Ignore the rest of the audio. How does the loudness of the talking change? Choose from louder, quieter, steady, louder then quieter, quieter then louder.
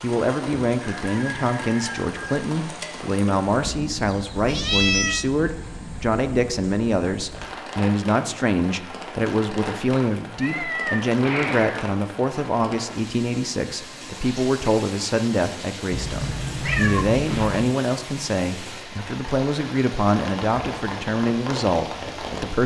steady.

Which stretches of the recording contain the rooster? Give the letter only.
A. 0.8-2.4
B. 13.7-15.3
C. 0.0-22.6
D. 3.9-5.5
A.